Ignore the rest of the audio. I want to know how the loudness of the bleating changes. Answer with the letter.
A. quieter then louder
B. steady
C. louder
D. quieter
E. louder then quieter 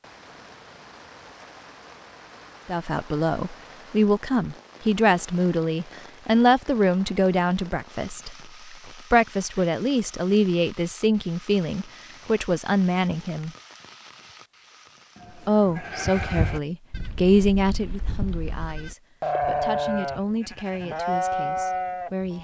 A.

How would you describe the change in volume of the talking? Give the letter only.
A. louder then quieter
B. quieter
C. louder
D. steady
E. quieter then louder
B.